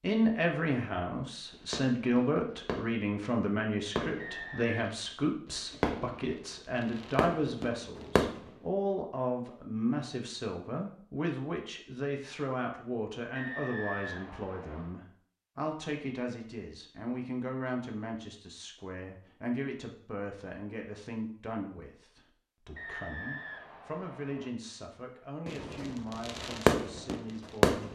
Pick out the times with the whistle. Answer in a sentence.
The whistle can be heard from 4.2 to 4.8 s, from 13.3 to 14.9 s and from 22.8 to 24.5 s.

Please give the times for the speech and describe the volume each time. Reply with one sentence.
The speech can be heard from 0.0 to 27.8 s, getting quieter.